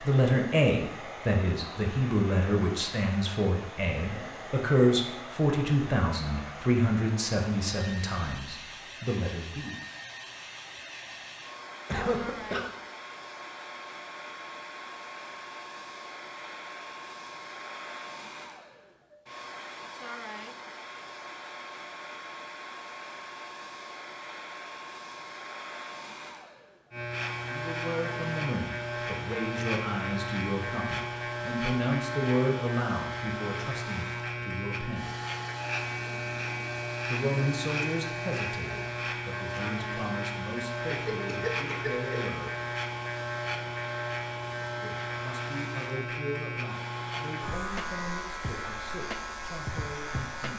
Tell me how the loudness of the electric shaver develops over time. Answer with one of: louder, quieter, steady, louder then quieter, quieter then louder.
steady.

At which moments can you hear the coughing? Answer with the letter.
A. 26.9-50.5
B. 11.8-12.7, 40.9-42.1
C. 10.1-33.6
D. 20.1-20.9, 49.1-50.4
B.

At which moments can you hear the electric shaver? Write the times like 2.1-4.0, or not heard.
26.9-50.5.